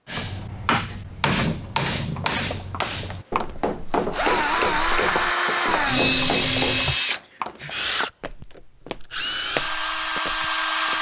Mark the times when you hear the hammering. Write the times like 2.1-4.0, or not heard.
0.1-6.9.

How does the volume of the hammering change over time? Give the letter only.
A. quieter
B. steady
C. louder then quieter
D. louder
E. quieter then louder
A.